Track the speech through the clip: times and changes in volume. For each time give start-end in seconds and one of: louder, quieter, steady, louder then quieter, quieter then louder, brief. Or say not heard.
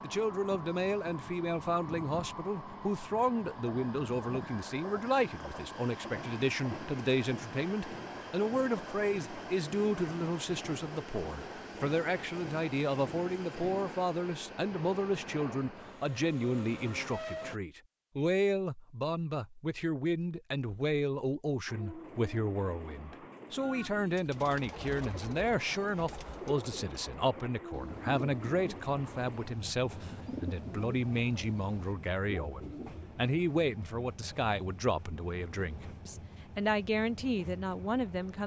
0.0-38.4 steady.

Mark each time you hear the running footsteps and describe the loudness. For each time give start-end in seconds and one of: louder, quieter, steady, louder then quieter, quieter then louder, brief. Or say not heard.
not heard.